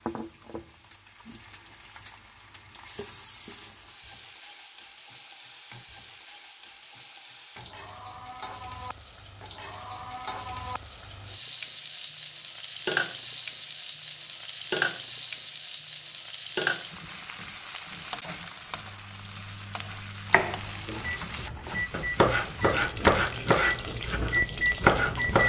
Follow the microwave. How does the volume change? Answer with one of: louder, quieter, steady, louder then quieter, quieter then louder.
louder.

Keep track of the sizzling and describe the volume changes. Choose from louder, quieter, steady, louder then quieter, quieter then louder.
louder.